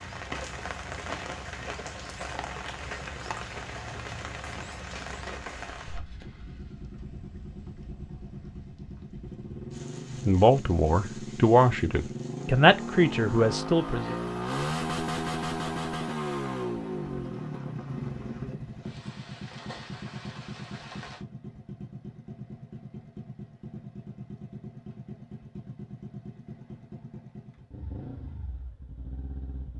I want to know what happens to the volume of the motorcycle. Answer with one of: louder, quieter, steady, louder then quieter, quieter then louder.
louder then quieter.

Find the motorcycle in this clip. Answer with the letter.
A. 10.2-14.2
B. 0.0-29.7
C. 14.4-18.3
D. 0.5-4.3
B.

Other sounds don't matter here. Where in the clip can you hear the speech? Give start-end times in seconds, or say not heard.
10.2-14.2.